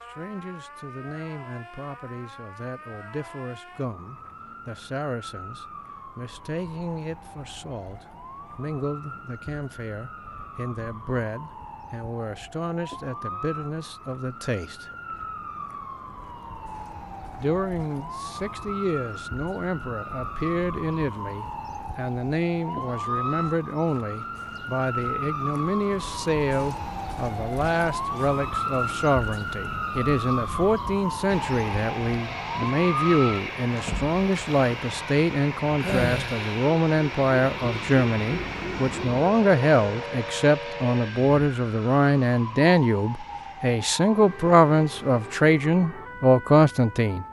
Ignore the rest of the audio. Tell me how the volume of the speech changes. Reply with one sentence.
The loudness of the speech goes up.